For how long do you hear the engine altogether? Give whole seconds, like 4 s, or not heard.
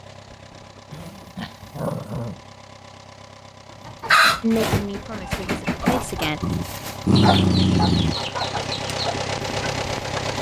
10 s.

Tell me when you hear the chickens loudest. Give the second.
4 s.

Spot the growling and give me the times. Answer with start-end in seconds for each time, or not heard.
0.9-2.4, 6.4-8.2.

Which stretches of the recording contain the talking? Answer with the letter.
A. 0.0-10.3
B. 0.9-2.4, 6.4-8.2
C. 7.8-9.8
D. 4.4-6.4
D.